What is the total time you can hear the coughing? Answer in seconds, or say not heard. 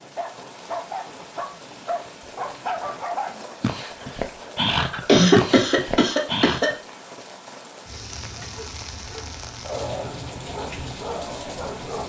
2 s.